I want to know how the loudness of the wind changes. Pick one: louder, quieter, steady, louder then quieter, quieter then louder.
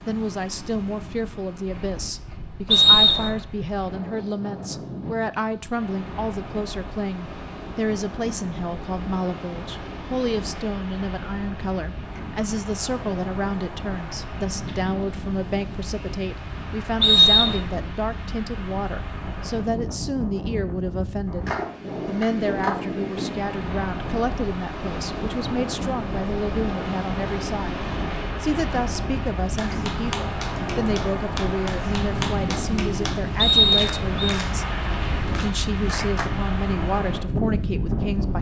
louder.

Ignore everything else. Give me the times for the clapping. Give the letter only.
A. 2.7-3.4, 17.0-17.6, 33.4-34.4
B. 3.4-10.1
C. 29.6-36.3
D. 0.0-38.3
C.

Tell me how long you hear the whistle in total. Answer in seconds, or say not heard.
2 s.